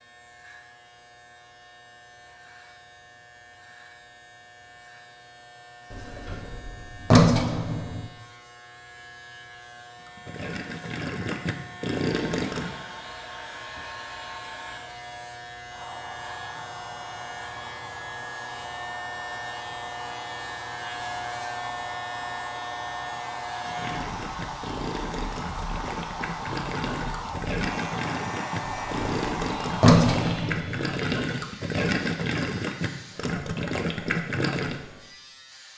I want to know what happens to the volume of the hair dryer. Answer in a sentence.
The volume of the hair dryer goes up.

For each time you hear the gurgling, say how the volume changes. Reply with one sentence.
You can hear the gurgling briefly from 9.9 to 12.8 s; and from 23.6 to 34.8 s, getting louder.